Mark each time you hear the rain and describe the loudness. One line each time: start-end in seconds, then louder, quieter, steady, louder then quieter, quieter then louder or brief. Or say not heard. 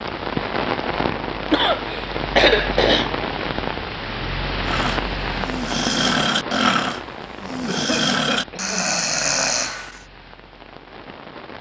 0.0-11.5 quieter.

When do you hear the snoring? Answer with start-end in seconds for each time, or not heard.
4.7-10.0.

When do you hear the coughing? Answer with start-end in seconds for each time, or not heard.
1.5-3.1, 7.7-8.8.